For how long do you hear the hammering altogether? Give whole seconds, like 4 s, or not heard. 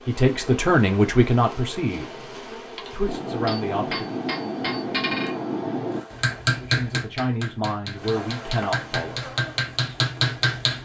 8 s.